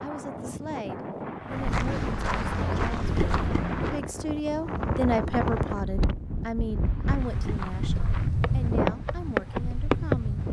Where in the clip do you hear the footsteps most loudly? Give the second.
10 s.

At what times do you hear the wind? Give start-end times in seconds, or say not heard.
0.0-10.4.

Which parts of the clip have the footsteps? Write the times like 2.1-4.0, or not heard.
1.5-4.0, 6.8-10.2.